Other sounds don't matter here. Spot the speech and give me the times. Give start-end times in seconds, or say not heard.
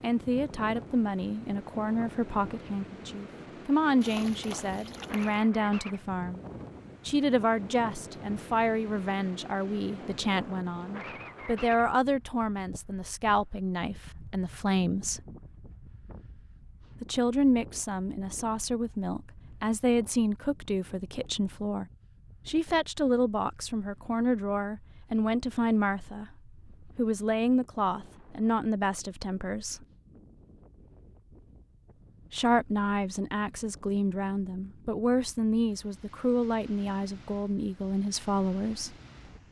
0.0-6.4, 7.0-15.2, 17.0-21.9, 22.4-29.8, 32.3-39.0.